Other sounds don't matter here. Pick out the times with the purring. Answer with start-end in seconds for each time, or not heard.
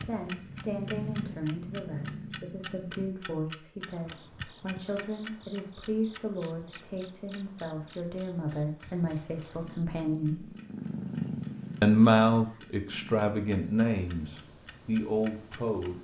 0.0-3.1, 9.6-16.0.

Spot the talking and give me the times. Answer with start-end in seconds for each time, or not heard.
0.1-10.4, 11.8-16.0.